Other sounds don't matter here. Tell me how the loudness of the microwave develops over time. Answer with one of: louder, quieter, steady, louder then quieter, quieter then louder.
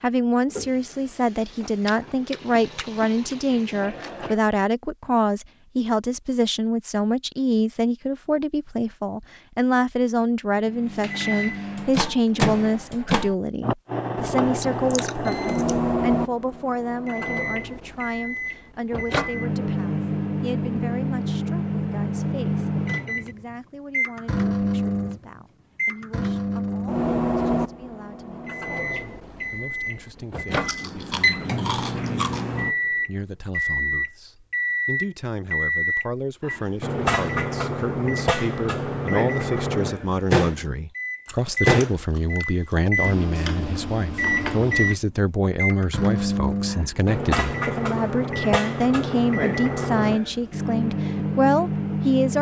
steady.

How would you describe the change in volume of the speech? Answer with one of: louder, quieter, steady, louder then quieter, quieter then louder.
quieter then louder.